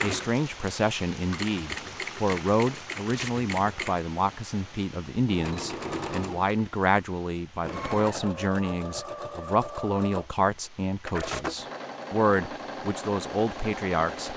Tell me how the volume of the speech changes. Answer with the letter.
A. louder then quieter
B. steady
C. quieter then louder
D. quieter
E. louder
B.